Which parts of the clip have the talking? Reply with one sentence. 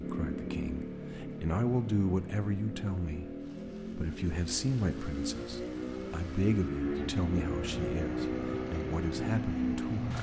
You can hear the talking from 0.0 to 3.4 s and from 4.0 to 10.1 s.